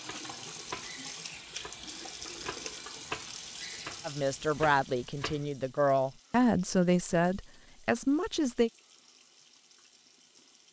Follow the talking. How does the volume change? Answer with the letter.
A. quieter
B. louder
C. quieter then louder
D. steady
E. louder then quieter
D.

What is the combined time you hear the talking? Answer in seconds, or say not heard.
5 s.